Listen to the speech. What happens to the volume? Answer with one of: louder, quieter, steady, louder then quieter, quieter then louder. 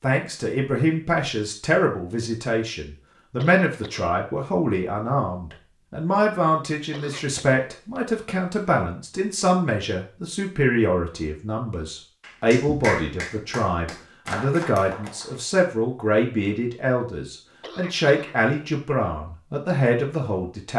steady.